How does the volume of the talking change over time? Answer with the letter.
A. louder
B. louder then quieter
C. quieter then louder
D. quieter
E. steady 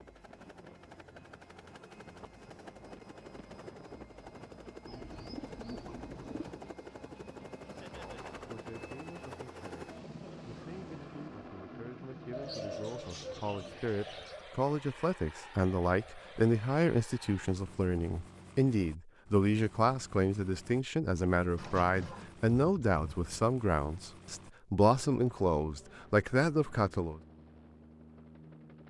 A.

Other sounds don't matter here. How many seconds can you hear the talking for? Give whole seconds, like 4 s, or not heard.
19 s.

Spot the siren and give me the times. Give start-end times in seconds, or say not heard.
not heard.